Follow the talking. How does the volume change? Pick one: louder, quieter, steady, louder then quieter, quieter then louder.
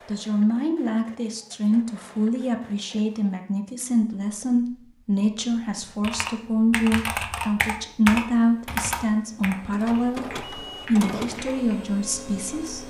steady.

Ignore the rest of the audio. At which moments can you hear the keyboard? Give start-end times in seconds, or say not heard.
5.5-11.8.